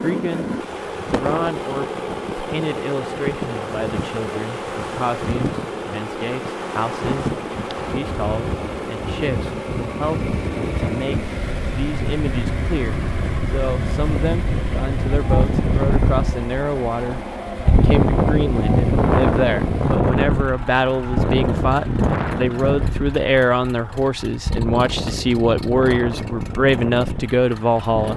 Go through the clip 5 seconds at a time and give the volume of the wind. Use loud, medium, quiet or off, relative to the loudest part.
medium, medium, medium, loud, loud, medium.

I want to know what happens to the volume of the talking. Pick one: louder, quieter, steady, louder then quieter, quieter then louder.
louder.